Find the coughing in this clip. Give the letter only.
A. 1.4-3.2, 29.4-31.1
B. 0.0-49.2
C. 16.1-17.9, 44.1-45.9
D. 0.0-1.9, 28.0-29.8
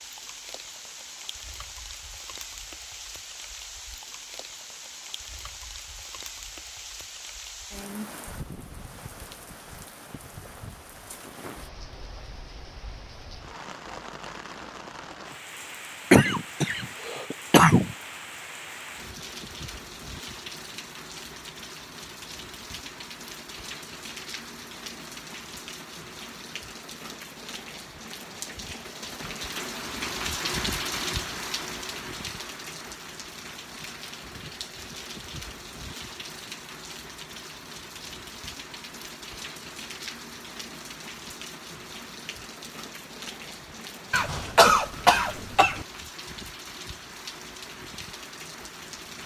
C.